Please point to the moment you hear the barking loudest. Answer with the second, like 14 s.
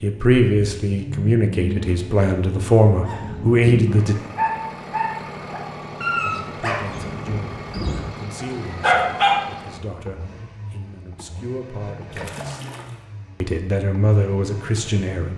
9 s.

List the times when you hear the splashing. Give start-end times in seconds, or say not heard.
12.1-13.1.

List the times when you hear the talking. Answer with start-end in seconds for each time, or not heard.
0.0-4.2, 6.2-12.7, 13.4-15.3.